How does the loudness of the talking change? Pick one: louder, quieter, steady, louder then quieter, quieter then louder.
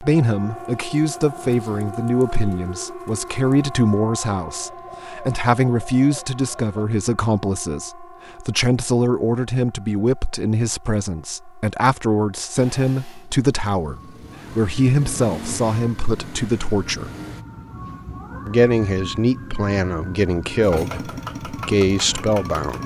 steady.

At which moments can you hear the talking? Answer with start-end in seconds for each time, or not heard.
0.0-17.1, 18.4-22.8.